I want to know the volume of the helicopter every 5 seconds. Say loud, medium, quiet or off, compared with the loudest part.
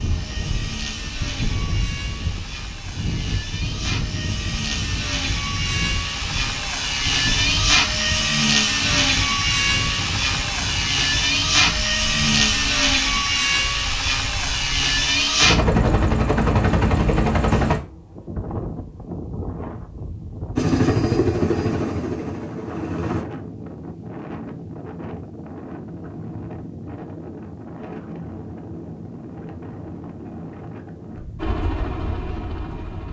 quiet, loud, loud, loud, loud, off, quiet.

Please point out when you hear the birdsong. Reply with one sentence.
The birdsong can't be heard in this clip.